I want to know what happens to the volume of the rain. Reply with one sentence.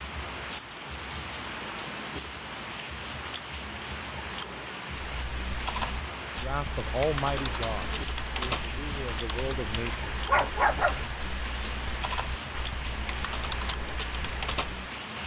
The volume of the rain stays about the same.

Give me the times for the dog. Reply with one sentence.
The dog can be heard from 10.2 to 12.2 s.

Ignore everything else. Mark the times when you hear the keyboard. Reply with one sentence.
You can hear the keyboard from 5.1 to 14.8 s.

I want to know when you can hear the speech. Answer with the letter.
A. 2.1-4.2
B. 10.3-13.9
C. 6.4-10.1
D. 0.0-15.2
C.